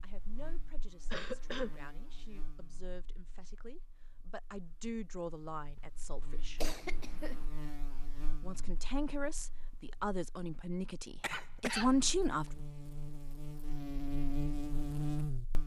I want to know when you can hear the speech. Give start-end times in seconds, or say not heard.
0.0-6.6, 8.4-12.4.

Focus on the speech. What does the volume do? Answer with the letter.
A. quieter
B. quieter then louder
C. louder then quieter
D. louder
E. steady
D.